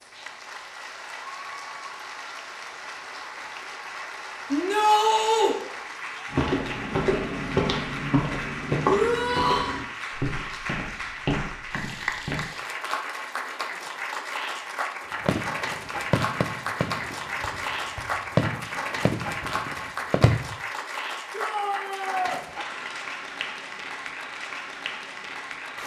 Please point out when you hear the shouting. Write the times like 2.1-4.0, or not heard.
4.5-5.5, 8.8-9.8, 21.3-22.4.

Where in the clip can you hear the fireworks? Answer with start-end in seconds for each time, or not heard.
15.2-20.6.